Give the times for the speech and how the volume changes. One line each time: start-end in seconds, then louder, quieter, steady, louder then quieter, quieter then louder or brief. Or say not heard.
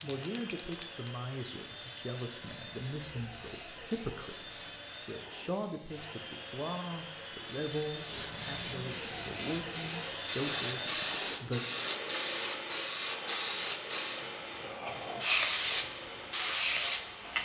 0.0-11.6 steady.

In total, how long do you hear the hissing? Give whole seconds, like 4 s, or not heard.
17 s.